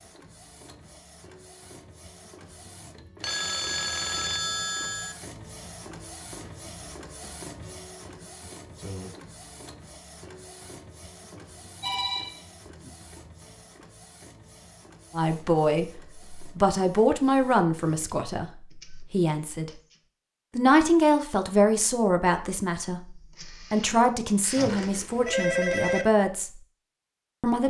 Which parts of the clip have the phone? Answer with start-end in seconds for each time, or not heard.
3.2-5.2, 11.3-12.9, 24.6-26.1.